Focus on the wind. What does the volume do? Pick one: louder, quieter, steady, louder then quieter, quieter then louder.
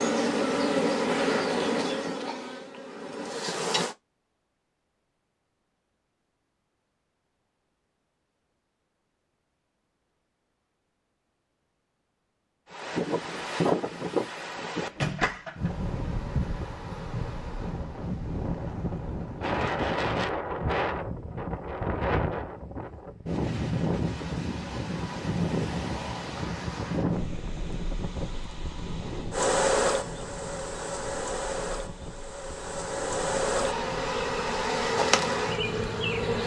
quieter.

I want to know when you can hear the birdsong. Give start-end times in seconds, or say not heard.
not heard.